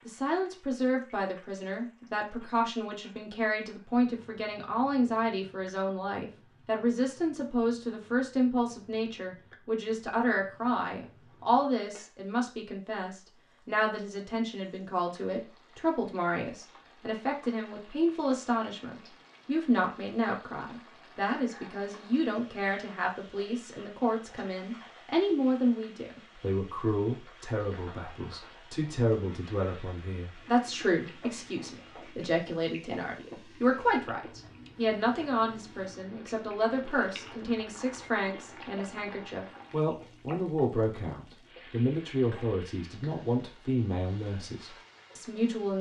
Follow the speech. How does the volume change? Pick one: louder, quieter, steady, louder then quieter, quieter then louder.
steady.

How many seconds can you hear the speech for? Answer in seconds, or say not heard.
46 s.